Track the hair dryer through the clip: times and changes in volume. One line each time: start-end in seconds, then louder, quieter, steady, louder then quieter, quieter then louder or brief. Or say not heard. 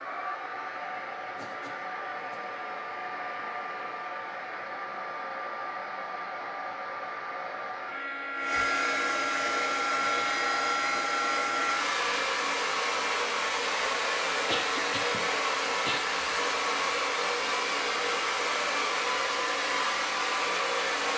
0.0-21.1 louder.